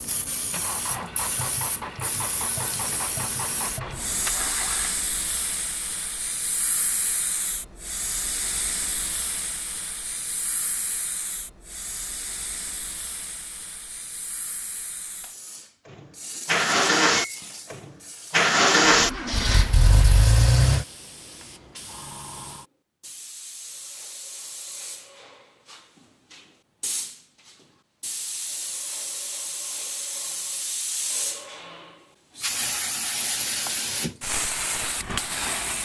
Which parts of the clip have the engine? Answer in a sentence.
You can hear the engine from 0.1 to 5.0 s and from 15.8 to 20.9 s.